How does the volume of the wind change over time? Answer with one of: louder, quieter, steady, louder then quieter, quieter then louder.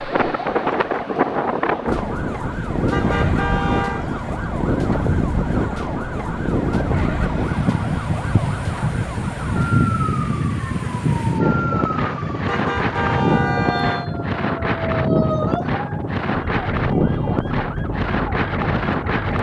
steady.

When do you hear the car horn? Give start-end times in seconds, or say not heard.
2.9-4.0, 12.4-14.1.